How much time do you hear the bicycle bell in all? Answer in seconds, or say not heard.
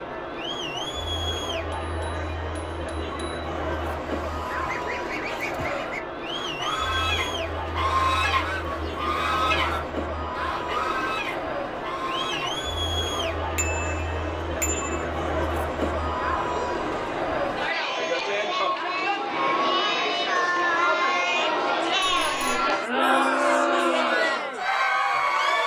4 s.